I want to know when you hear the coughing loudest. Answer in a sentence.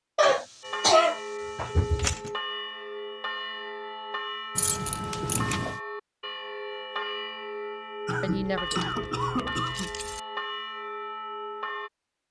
The loudest moment of the coughing is at 1 second.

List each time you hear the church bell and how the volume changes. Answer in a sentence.
You can hear the church bell from 0.6 to 11.9 s, at a steady volume.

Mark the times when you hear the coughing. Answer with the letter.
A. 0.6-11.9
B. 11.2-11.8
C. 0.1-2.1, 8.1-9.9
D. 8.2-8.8
C.